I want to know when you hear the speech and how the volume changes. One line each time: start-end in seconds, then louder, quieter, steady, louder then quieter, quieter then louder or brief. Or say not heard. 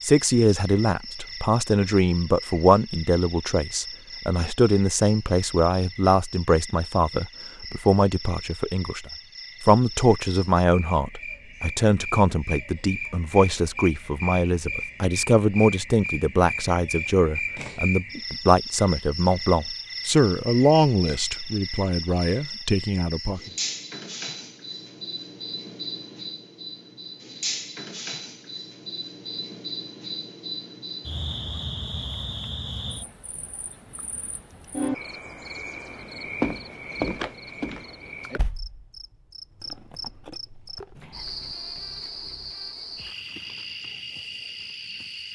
0.0-23.5 steady.